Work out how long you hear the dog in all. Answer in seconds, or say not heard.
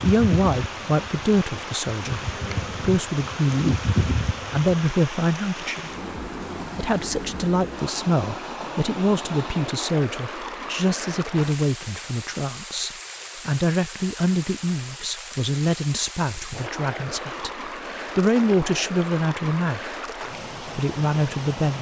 not heard.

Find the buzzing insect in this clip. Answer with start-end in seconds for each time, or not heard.
0.0-4.8.